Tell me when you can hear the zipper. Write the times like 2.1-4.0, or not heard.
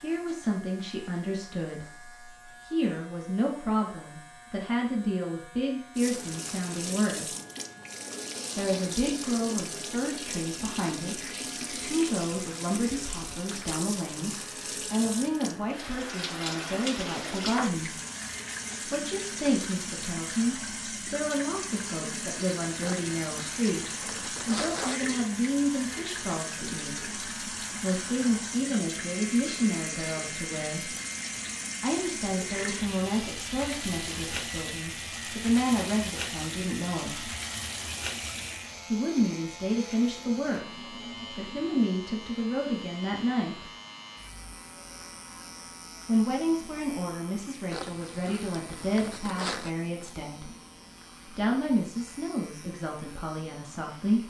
22.8-25.0, 47.7-49.8.